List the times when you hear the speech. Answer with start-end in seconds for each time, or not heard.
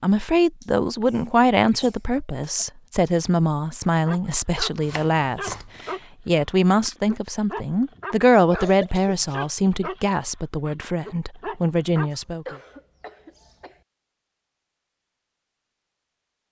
0.0-12.6.